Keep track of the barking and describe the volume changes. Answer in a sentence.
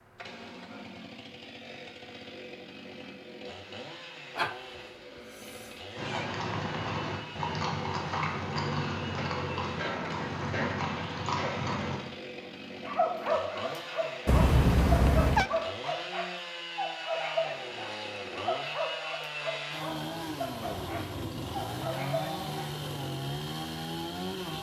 The loudness of the barking goes down.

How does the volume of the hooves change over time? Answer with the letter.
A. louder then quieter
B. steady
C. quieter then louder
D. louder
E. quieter
B.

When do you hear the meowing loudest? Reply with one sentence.
The loudest moment of the meowing is at 15 seconds.